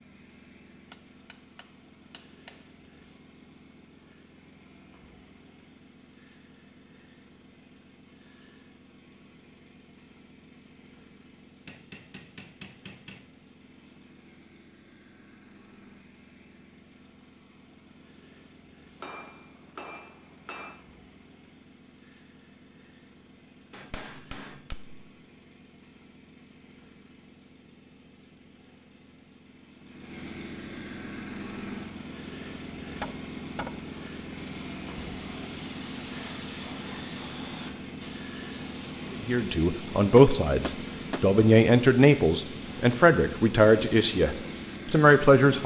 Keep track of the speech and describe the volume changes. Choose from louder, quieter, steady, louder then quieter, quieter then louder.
steady.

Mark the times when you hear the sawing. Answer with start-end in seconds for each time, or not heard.
not heard.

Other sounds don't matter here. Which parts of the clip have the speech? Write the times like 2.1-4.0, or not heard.
39.1-45.6.